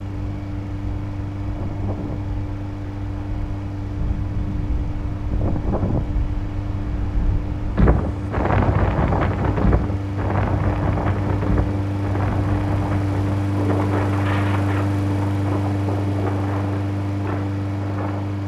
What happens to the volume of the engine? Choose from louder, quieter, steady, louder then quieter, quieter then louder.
louder.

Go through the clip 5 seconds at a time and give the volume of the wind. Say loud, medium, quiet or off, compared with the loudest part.
medium, loud, loud, medium.